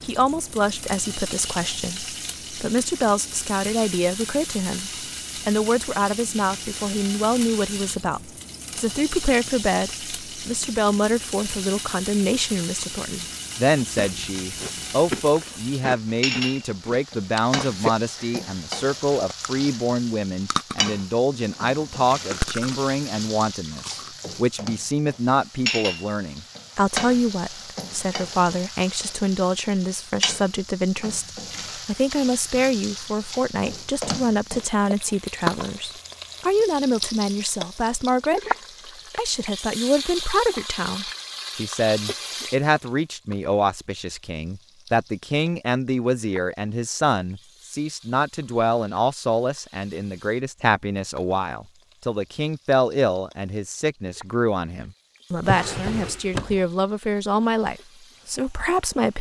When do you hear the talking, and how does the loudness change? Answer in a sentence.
The talking can be heard from 0.1 to 38.4 s, at a steady volume; and from 39.1 to 59.1 s, at a steady volume.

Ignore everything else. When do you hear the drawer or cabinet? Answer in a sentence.
You can hear the drawer or cabinet from 21.4 to 22.4 s and from 55.4 to 56.6 s.